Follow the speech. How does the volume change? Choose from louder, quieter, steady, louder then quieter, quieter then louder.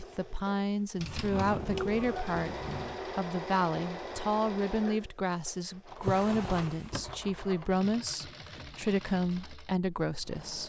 steady.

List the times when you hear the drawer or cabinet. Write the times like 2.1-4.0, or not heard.
0.9-3.0, 6.0-7.2.